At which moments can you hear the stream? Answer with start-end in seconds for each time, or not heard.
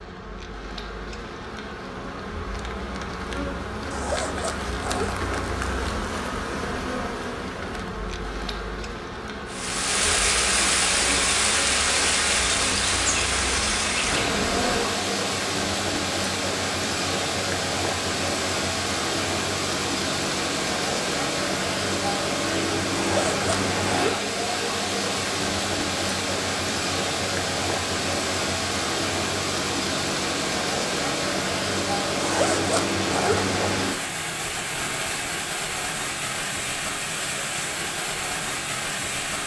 9.4-39.4.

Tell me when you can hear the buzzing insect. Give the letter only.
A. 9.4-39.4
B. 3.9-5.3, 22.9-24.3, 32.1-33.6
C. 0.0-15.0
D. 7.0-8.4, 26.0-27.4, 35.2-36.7
C.